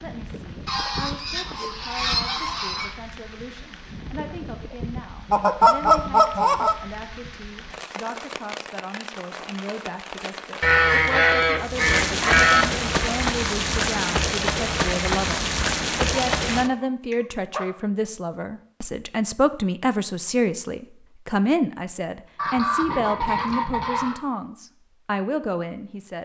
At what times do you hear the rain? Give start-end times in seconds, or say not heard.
0.0-16.7.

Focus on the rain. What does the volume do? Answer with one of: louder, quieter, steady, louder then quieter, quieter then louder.
louder.